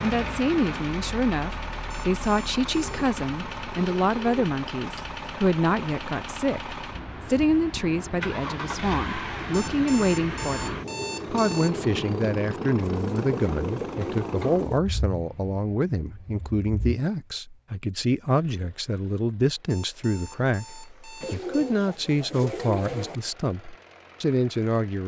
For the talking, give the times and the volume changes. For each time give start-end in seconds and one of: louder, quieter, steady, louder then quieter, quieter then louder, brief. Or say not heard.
0.0-25.0 steady.